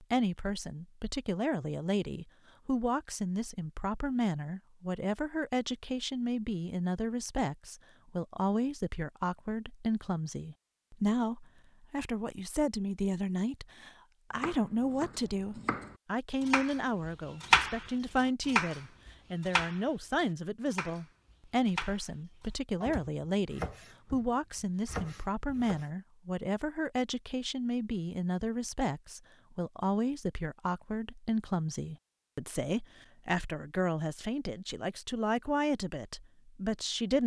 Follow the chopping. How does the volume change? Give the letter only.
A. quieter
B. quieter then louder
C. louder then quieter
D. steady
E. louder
C.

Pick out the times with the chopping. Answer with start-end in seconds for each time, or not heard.
14.3-22.1, 22.8-25.9.